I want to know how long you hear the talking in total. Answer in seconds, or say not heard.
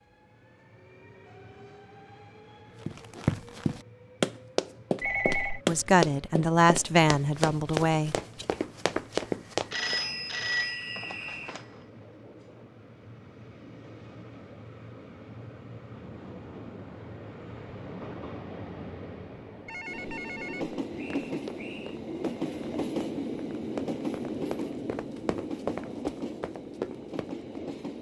3 s.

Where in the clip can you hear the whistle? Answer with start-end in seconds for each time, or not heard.
9.9-11.6, 20.9-22.0.